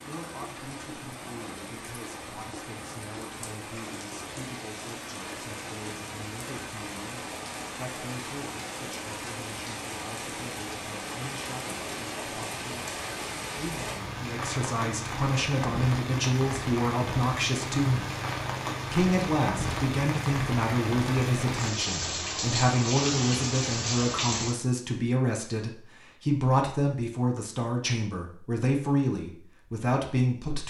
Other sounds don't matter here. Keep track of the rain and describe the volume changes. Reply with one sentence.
The loudness of the rain goes up.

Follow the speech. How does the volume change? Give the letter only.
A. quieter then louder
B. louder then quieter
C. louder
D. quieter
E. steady
C.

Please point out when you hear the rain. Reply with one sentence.
You can hear the rain from 0.0 to 24.6 s.